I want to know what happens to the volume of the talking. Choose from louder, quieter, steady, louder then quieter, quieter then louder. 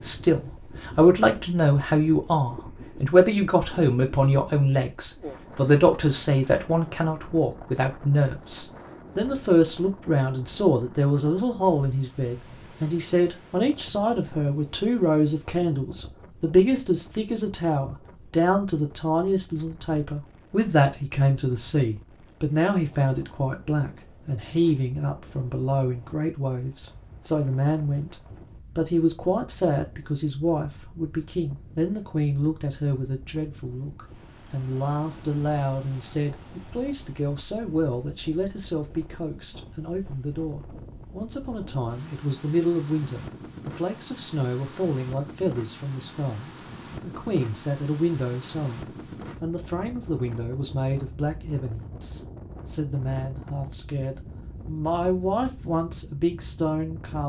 quieter.